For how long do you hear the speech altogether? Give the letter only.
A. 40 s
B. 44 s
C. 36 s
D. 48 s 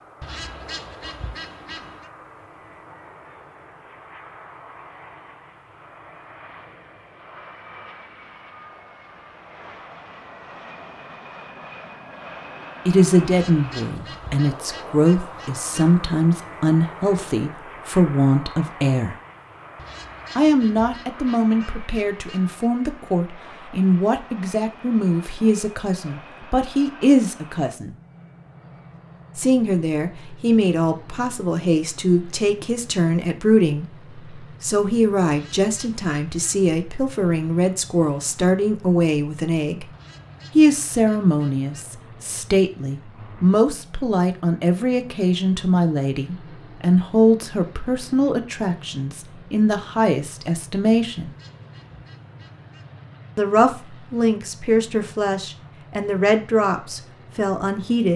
A.